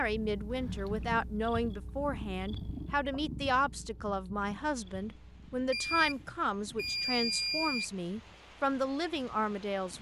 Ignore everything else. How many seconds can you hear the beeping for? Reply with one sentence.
You can hear the beeping for 3 seconds altogether.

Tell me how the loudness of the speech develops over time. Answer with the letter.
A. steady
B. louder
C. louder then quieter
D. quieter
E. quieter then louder
A.